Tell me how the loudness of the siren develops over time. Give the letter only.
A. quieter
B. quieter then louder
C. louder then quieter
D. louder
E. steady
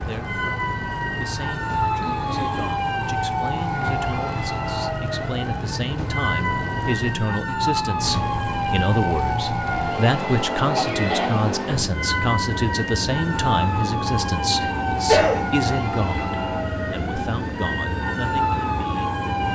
E.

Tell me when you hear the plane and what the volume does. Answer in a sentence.
The plane can be heard from 0.0 to 19.5 s, at a steady volume.